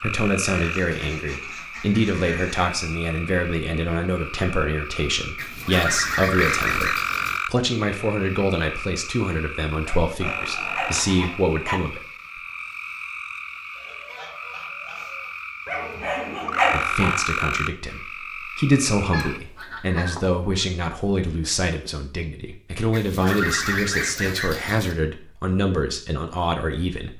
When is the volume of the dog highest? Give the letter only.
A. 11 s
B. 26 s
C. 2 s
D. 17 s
D.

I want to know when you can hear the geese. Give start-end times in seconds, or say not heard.
0.5-2.7, 5.3-7.4, 10.2-11.3, 13.8-15.3, 19.1-20.6, 22.9-24.9.